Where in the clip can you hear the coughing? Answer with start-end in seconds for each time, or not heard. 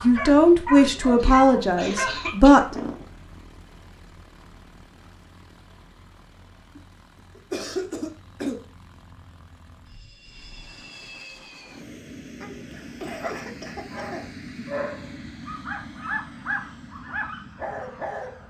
1.2-3.0, 6.8-8.6, 12.4-14.3.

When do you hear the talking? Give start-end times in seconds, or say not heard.
0.0-2.6.